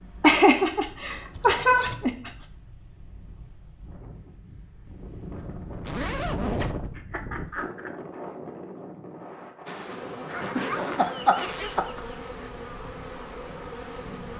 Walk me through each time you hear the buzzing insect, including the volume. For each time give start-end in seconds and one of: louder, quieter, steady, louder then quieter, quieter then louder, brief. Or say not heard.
9.7-14.3 steady.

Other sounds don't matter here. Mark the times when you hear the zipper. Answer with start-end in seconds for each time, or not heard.
1.3-2.1, 5.8-6.8, 10.3-11.8.